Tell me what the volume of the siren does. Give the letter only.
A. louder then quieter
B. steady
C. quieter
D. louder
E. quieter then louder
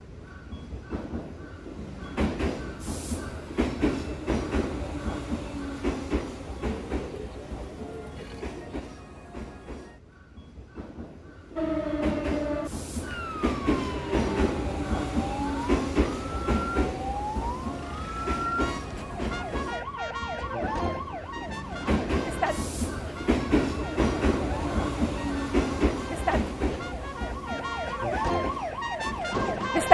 E.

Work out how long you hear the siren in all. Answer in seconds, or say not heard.
18 s.